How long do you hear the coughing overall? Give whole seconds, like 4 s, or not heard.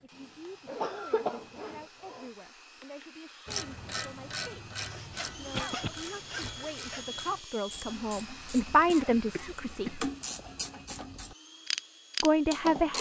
3 s.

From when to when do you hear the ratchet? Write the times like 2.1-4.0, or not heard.
3.5-12.9.